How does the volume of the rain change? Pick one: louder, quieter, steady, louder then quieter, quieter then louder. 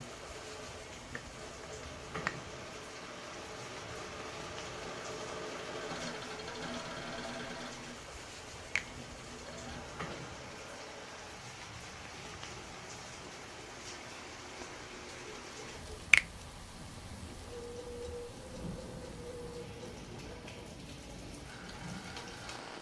steady.